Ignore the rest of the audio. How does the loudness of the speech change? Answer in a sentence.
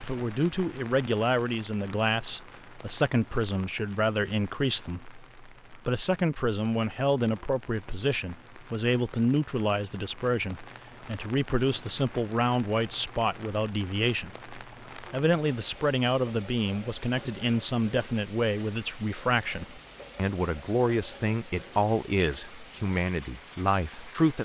The loudness of the speech stays about the same.